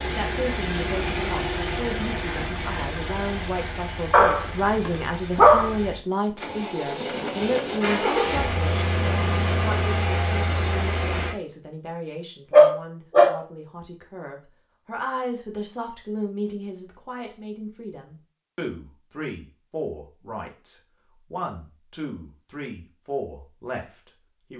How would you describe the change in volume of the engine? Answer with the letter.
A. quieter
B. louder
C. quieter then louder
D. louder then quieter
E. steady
C.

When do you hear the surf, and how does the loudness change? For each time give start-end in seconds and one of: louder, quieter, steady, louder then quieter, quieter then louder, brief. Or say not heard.
not heard.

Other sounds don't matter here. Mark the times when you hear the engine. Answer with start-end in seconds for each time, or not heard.
0.0-11.3.